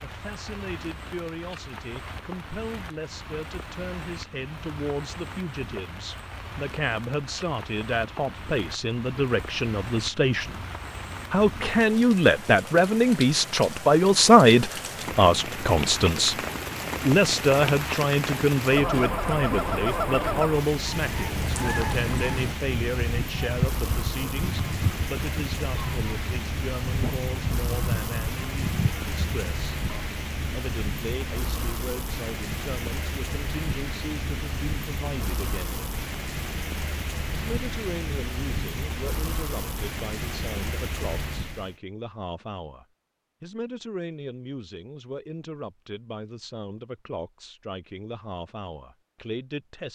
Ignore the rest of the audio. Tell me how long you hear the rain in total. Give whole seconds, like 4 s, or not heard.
42 s.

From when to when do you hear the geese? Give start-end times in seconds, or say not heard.
18.6-30.1.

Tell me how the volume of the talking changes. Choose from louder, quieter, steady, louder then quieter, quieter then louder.
louder then quieter.